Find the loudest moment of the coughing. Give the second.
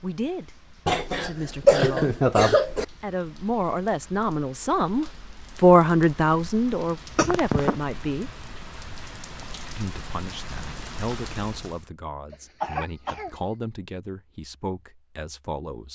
2 s.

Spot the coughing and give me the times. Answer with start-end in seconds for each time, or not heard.
0.8-2.9, 7.2-7.8, 12.3-13.3.